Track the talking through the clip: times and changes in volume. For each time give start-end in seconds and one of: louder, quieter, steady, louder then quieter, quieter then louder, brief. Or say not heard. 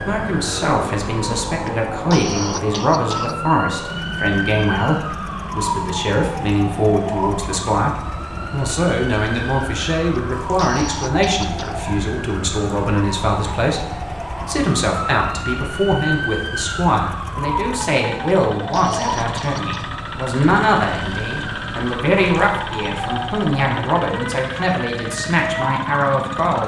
0.1-26.6 steady.